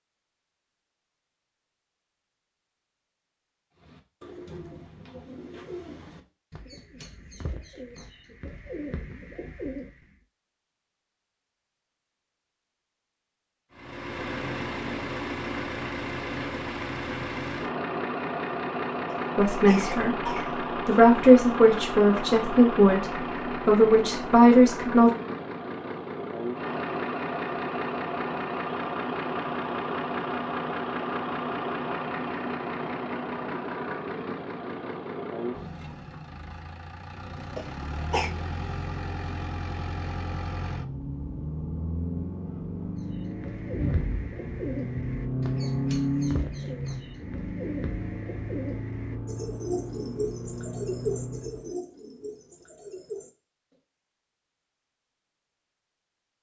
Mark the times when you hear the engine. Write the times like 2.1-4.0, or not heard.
13.8-51.7.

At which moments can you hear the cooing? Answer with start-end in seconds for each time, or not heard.
3.8-10.1, 43.0-53.8.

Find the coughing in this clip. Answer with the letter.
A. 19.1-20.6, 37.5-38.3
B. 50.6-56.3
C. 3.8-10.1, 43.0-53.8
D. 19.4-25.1
A.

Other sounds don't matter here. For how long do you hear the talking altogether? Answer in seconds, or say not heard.
6 s.